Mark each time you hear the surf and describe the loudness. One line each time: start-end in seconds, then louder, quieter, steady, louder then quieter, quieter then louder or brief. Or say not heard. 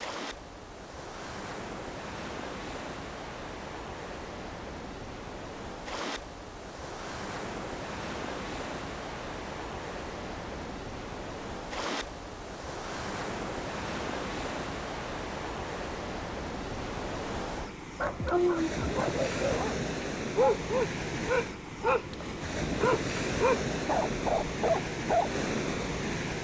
0.0-26.3 louder.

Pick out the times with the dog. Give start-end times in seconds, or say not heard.
18.0-25.4.